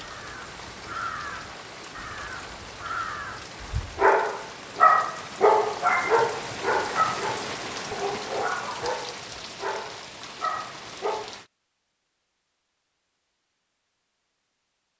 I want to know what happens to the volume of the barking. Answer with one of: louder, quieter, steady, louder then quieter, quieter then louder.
quieter.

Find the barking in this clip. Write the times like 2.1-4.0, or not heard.
4.0-11.3.